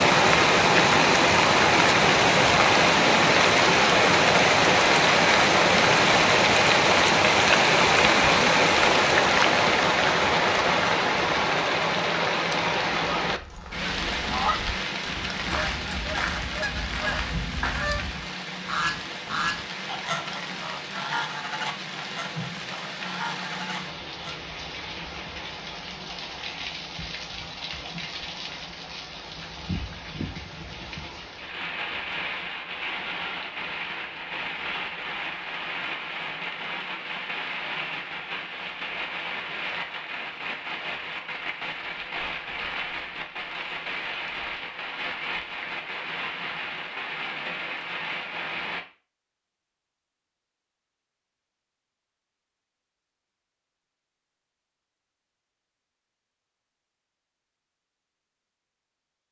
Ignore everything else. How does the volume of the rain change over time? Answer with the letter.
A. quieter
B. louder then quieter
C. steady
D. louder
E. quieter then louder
A.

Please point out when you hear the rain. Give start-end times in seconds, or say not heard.
0.0-48.9.